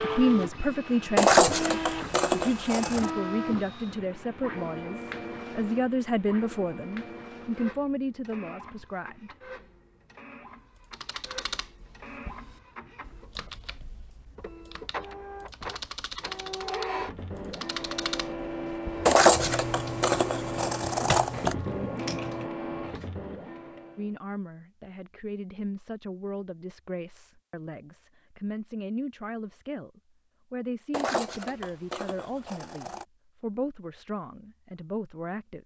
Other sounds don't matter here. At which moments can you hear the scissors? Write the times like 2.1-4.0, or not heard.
1.1-3.1, 19.1-21.6, 30.9-33.0.